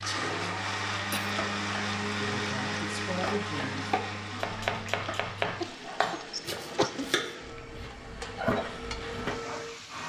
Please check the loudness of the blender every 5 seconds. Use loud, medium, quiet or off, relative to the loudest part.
loud, medium.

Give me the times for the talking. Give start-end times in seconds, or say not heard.
2.0-4.4.